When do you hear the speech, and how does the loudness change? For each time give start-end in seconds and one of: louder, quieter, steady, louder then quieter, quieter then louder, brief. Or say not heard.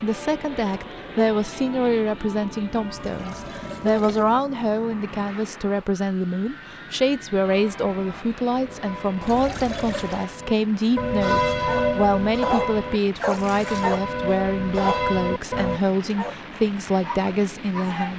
0.0-18.1 steady.